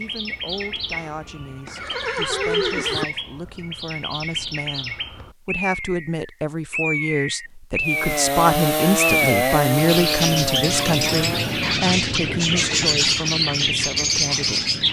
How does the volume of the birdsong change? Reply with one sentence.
The volume of the birdsong goes up.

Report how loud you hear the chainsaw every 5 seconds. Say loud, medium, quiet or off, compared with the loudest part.
off, loud, medium.